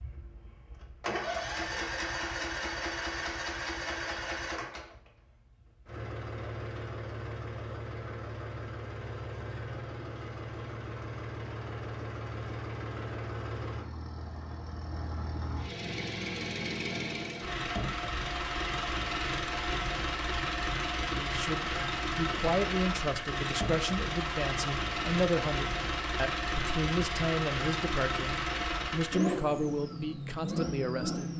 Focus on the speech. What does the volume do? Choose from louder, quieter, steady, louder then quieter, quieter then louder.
steady.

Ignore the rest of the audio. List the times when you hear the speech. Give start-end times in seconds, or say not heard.
21.1-31.3.